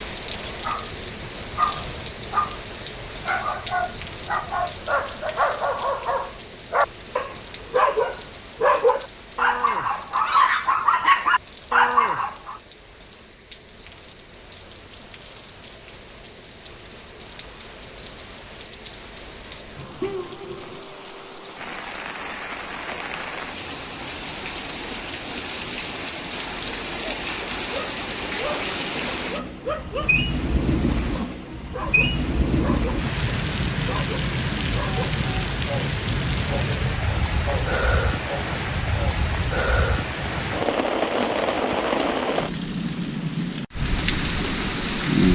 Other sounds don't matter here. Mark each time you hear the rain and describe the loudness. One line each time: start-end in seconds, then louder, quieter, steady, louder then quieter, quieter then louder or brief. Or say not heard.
0.0-45.3 quieter then louder.